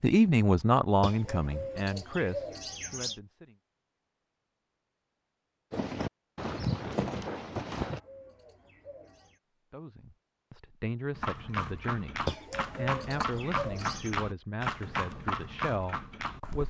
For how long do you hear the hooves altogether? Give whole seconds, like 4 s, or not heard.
8 s.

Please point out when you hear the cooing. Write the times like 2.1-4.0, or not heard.
1.0-3.2, 7.8-9.4, 12.2-14.2.